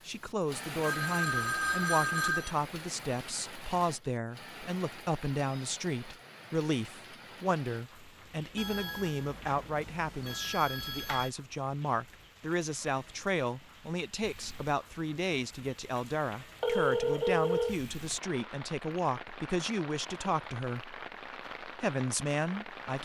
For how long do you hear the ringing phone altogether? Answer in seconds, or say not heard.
6 s.